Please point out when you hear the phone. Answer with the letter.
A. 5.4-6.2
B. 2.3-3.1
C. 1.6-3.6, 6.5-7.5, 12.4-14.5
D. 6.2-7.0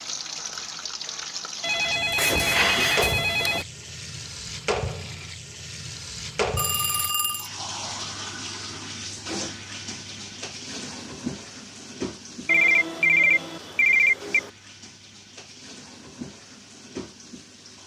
C.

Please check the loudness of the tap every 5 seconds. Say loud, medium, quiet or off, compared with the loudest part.
loud, loud, medium, medium.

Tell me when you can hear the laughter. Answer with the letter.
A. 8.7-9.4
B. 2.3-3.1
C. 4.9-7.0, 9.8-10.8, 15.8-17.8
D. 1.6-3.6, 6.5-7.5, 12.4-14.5
B.